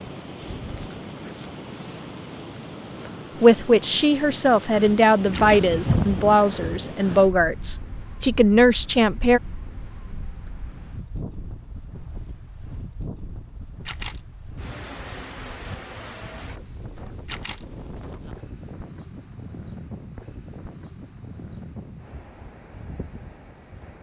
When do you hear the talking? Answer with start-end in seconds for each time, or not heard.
3.4-9.4.